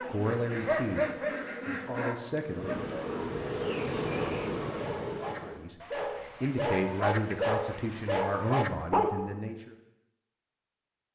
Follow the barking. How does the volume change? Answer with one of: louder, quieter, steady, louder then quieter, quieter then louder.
quieter then louder.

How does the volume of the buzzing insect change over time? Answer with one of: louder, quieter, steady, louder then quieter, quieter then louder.
louder.